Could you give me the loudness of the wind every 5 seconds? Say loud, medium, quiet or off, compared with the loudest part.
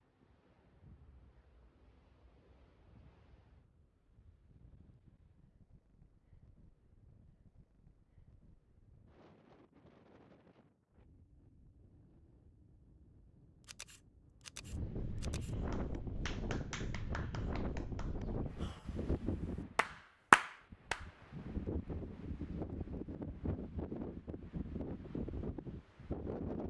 quiet, quiet, quiet, loud, loud, loud.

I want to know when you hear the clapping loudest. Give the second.
20 s.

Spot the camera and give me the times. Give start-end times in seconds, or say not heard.
13.6-15.6.